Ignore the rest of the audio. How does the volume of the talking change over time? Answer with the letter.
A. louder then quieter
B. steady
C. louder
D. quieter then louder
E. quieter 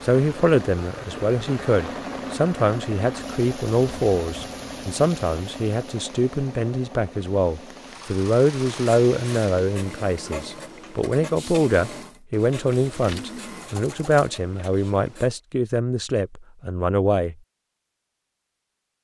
B.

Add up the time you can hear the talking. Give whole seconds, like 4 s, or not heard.
17 s.